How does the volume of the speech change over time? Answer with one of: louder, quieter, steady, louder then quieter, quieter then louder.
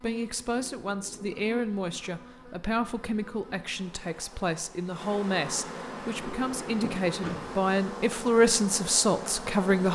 louder.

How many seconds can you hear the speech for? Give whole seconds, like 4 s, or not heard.
10 s.